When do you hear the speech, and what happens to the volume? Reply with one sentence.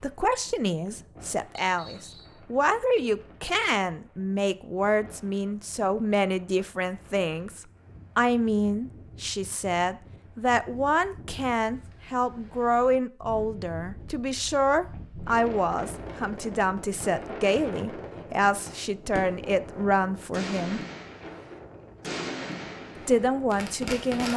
You can hear the speech from 0.0 to 20.8 s, at a steady volume; and briefly from 23.1 to 24.3 s.